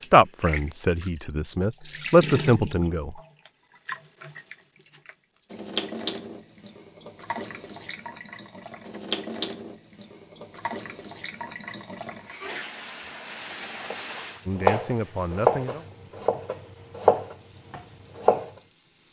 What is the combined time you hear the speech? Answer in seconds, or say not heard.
5 s.